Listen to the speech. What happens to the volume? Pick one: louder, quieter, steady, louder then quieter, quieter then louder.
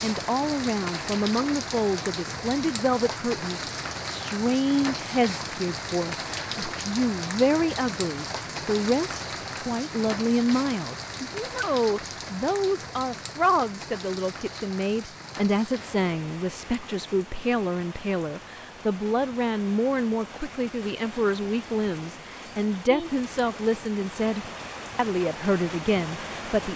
steady.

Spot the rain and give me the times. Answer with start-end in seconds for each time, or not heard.
0.0-26.7.